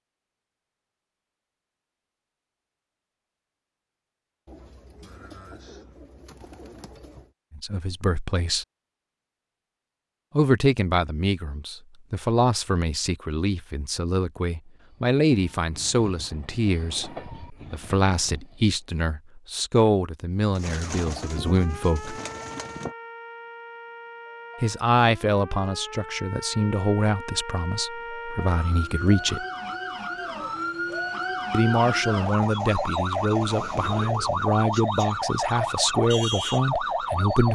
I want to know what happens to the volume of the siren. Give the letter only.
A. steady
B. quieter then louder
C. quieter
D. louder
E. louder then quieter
D.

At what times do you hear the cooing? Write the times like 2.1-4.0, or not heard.
4.5-7.3, 20.6-22.9.